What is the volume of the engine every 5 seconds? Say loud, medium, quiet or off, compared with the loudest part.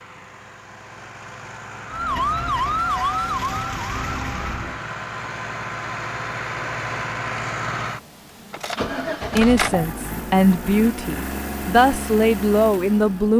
medium, loud, loud.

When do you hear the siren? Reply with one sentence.
You can hear the siren from 1.9 to 4.8 s.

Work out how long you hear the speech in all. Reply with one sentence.
The speech can be heard for 4 seconds in total.